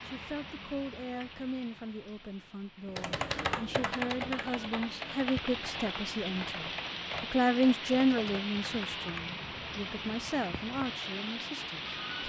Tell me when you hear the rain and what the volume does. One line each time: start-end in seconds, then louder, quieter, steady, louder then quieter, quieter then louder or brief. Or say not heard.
0.0-12.2 louder.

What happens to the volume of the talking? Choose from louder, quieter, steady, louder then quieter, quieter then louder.
louder then quieter.